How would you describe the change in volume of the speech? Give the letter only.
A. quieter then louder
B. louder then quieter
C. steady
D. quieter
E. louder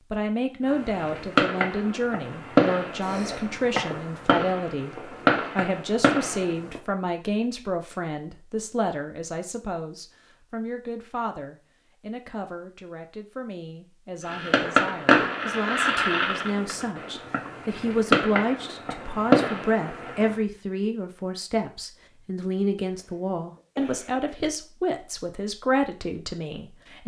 A.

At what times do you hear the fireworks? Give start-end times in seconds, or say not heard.
0.7-6.8, 14.2-20.4.